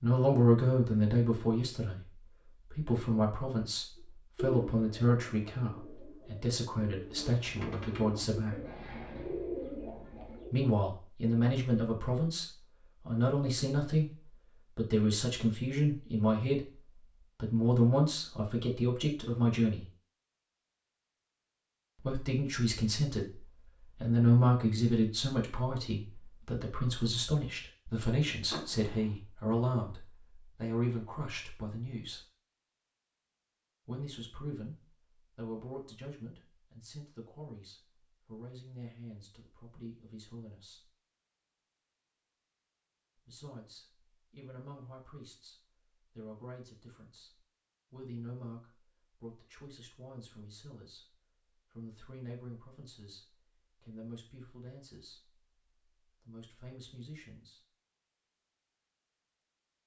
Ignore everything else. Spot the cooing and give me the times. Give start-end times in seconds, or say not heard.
4.0-10.5.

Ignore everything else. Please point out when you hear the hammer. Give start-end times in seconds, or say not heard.
not heard.